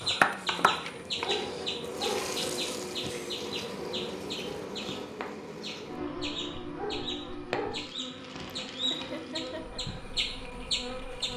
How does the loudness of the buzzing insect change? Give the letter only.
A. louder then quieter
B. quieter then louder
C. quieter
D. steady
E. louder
C.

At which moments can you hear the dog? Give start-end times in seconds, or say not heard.
1.2-2.3, 6.8-7.8.